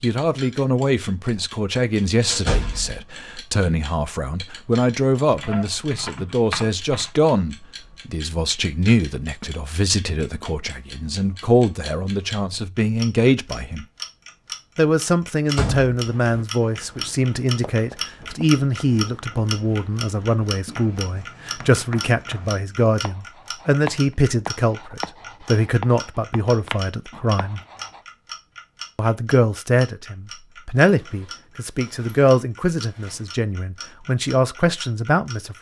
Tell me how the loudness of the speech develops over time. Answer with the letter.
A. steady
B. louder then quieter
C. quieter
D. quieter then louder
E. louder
A.